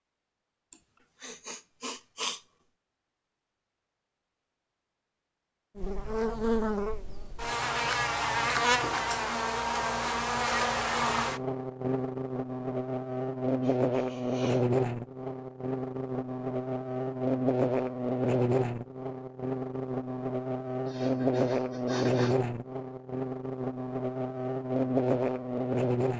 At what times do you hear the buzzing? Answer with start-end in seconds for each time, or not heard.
5.8-26.1.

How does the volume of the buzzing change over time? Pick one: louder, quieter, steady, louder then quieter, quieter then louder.
steady.